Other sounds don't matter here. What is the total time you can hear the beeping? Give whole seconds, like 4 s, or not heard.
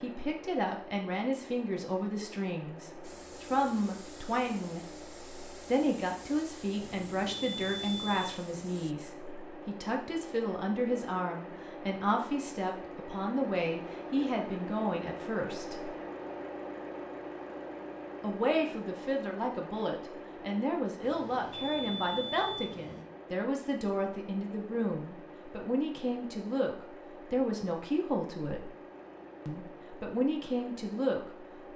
4 s.